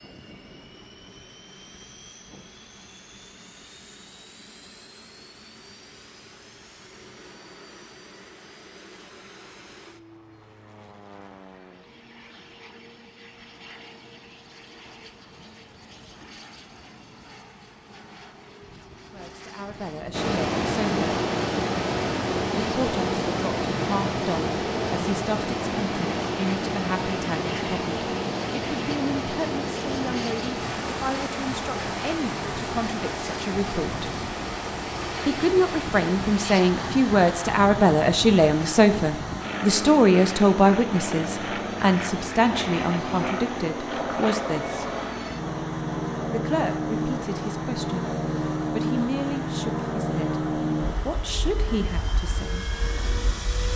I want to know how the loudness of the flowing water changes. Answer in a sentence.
The loudness of the flowing water goes down.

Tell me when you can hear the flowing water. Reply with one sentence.
The flowing water can be heard from 20.1 to 53.6 s.